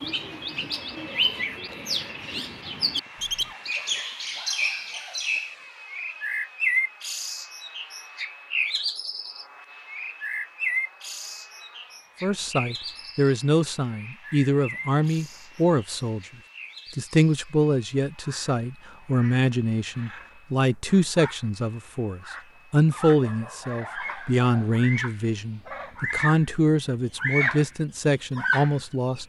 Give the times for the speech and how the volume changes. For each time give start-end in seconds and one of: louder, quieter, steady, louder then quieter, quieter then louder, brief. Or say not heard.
12.2-16.2 steady
16.9-29.2 steady.